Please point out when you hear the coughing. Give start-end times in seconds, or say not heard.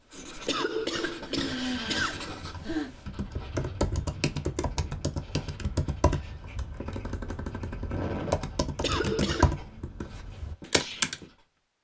0.5-2.3, 8.8-9.6.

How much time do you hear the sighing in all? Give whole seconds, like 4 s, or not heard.
2 s.